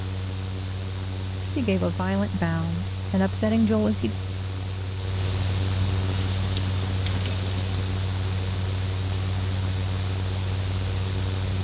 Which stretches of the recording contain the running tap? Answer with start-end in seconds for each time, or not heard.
6.0-8.0.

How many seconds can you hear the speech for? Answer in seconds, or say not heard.
3 s.